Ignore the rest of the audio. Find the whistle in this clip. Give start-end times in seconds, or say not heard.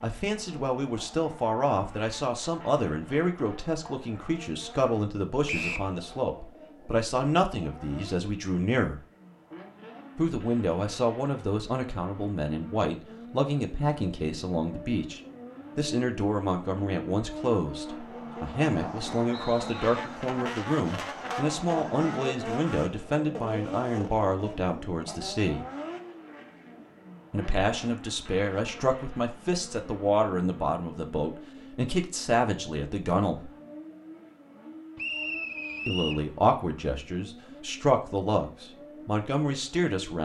5.5-5.9, 19.3-20.1, 35.0-36.2.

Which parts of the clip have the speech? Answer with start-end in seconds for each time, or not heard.
0.0-9.0, 10.2-25.6, 27.3-33.5, 35.9-40.2.